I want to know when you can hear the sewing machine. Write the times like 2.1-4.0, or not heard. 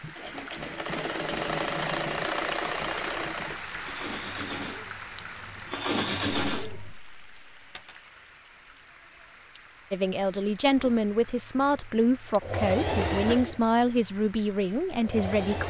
0.0-6.9, 10.8-15.6.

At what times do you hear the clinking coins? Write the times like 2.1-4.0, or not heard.
7.8-8.2.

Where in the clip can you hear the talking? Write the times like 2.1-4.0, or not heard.
9.9-15.6.